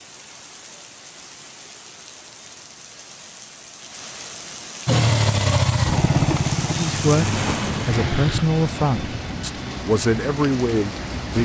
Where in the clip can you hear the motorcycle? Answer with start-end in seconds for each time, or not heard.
4.8-8.4.